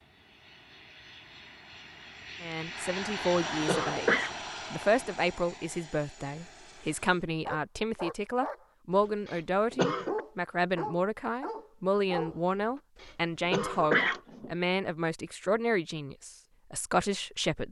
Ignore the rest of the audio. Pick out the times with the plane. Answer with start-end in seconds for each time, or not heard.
0.0-7.2.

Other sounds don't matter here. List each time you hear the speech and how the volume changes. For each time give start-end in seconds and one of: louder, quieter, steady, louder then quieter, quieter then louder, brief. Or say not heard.
2.4-17.6 steady.